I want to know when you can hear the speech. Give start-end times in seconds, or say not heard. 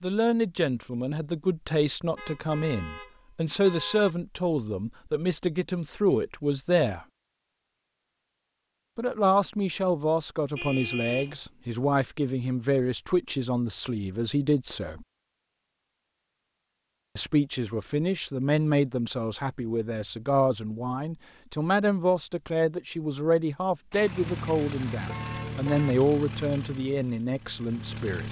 0.0-7.0, 8.9-15.1, 17.1-28.2.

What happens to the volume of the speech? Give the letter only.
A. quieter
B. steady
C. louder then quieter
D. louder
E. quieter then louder
B.